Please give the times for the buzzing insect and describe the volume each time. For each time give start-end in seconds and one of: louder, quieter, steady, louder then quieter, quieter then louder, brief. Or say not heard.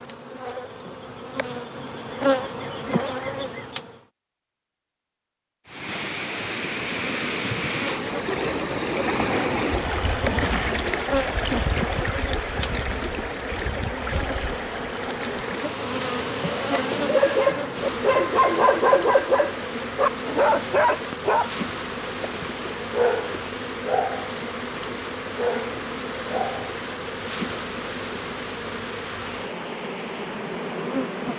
0.0-4.0 louder
6.5-31.3 steady.